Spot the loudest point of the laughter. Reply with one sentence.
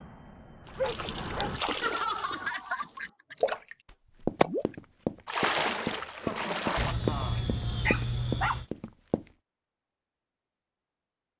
The loudest moment of the laughter is at 2 seconds.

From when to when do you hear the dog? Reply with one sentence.
The dog can be heard from 0.8 to 2.5 s and from 6.8 to 8.7 s.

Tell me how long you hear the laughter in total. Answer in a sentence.
You can hear the laughter for 3 seconds altogether.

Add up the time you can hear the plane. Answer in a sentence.
You can hear the plane for 2 seconds altogether.